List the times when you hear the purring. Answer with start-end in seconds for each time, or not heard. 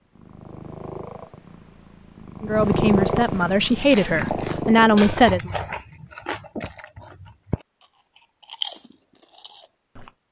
0.1-5.8.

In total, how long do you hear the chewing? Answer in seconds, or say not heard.
7 s.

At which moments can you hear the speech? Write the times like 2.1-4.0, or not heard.
2.4-5.5.